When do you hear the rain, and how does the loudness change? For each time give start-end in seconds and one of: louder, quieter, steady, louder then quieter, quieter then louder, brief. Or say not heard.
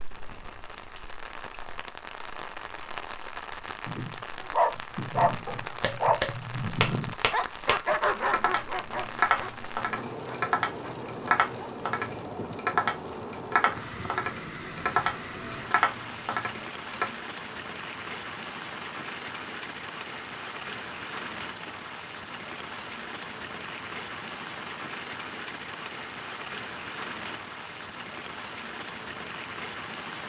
0.0-30.2 steady.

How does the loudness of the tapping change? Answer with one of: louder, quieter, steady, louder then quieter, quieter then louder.
steady.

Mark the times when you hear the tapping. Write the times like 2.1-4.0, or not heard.
5.5-17.1.